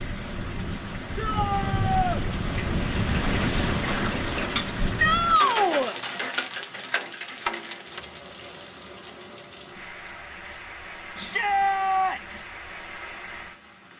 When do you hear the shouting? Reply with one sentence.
The shouting can be heard from 1.1 to 2.2 s, from 5.0 to 6.0 s and from 11.2 to 12.4 s.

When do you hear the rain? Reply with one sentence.
The rain can be heard from 0.0 to 13.9 s.